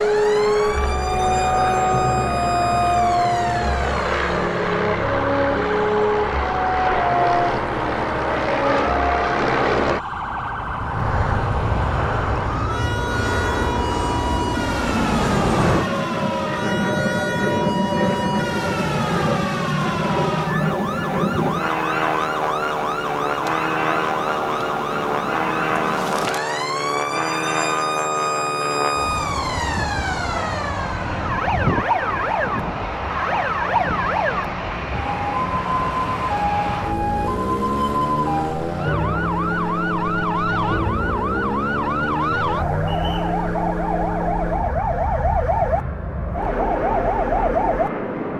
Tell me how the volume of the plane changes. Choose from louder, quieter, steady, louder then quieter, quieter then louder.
quieter.